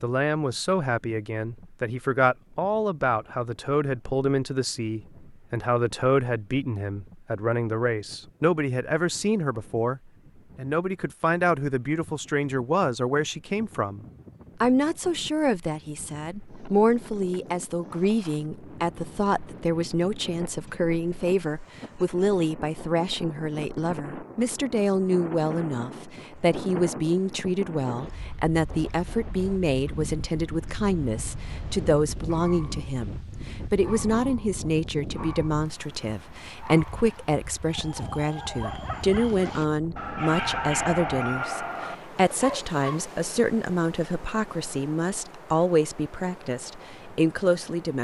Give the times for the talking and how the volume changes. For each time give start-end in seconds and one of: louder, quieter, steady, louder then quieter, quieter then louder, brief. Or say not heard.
0.0-47.9 steady.